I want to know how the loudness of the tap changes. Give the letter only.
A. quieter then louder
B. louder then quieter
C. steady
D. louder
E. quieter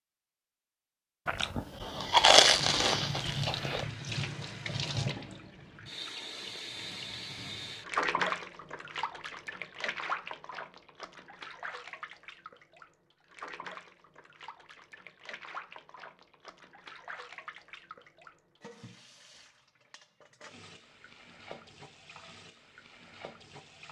E.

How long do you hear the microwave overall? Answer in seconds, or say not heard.
not heard.